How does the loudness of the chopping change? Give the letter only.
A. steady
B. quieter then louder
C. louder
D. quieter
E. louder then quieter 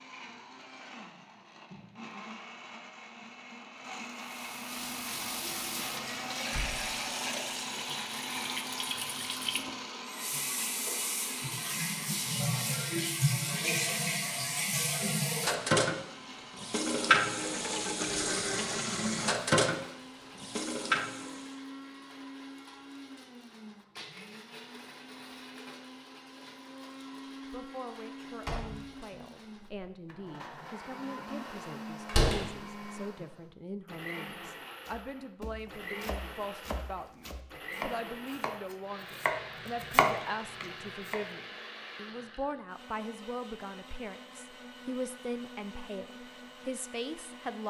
C.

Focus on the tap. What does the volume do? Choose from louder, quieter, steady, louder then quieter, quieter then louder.
louder.